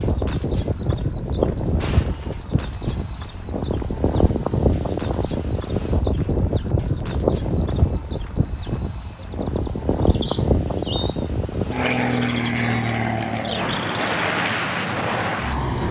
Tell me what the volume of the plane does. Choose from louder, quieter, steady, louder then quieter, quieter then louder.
steady.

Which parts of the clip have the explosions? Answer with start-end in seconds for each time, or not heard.
1.8-2.4.